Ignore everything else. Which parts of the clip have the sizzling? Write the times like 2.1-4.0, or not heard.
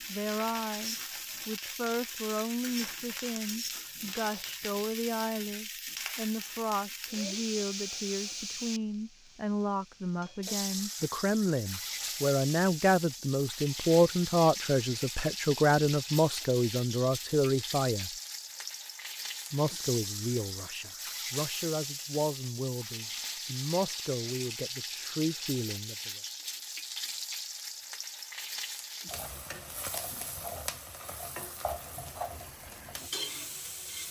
0.0-34.0.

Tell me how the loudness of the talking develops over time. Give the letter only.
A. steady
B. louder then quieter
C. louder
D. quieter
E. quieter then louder
B.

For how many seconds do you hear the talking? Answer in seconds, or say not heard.
25 s.